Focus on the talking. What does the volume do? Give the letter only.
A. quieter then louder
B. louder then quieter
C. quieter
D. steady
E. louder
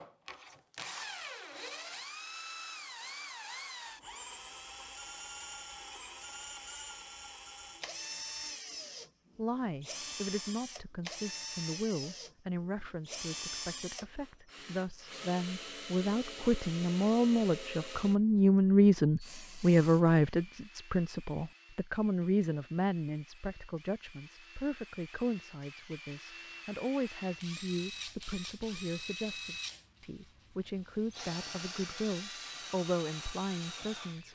B.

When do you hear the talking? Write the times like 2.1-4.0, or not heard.
9.3-34.3.